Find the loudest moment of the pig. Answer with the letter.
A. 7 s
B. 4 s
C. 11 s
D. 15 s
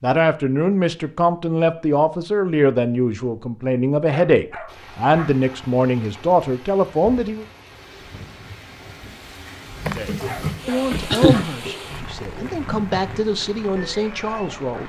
C.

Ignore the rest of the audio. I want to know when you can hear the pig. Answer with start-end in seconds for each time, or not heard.
9.8-14.8.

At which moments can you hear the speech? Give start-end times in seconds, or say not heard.
0.0-7.5, 9.9-14.8.